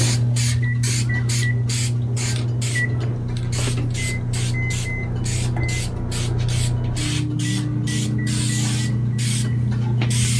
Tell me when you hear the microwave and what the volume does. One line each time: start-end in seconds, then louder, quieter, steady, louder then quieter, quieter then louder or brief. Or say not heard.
0.0-10.3 louder.